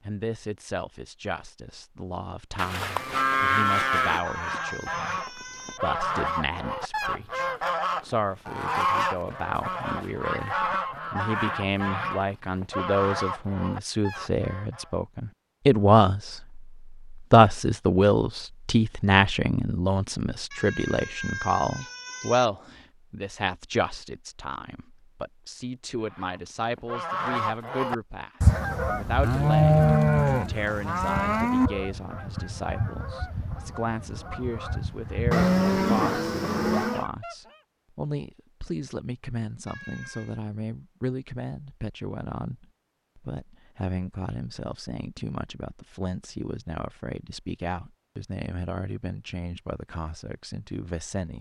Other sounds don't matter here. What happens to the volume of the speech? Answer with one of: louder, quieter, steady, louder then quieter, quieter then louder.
louder then quieter.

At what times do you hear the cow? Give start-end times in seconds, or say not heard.
2.5-4.2, 29.2-31.7, 35.3-37.0.